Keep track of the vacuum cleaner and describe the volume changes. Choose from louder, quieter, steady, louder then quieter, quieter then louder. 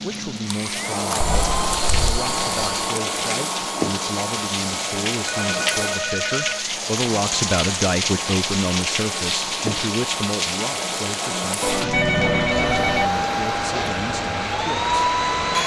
quieter then louder.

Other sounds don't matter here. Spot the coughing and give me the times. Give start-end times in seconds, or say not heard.
not heard.